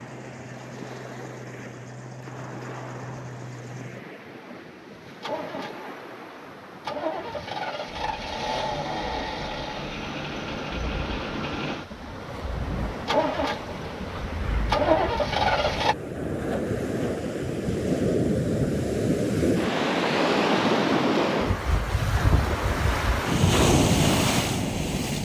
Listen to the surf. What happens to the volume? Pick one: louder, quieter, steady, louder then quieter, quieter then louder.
louder.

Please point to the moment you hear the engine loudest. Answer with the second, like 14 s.
15 s.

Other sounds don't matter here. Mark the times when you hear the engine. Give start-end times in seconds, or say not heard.
0.0-15.9.